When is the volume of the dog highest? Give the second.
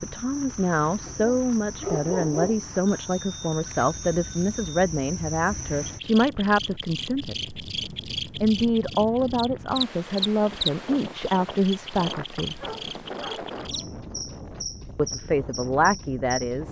2 s.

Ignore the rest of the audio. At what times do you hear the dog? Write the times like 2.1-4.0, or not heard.
1.1-2.7, 12.5-13.9.